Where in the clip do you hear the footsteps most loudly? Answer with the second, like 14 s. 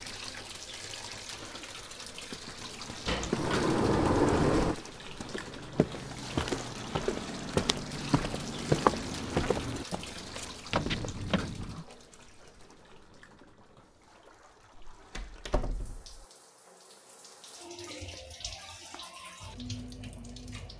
9 s.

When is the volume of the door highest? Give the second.
4 s.